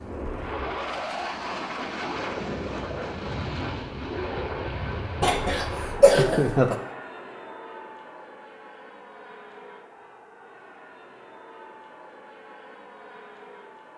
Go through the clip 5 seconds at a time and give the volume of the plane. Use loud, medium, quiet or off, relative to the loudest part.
loud, medium, quiet.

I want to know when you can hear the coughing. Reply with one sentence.
The coughing can be heard from 5.2 to 6.8 s.